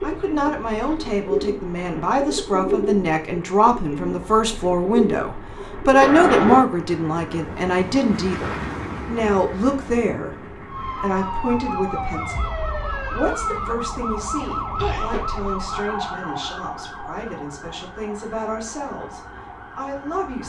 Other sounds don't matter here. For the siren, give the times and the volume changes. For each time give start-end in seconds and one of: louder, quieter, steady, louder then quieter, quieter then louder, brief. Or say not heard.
10.7-20.4 quieter.